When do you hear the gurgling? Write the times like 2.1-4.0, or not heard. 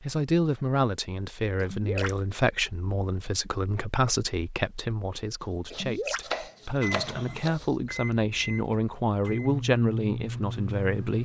1.6-2.2, 5.7-6.3.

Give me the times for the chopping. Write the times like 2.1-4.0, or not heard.
5.4-8.0.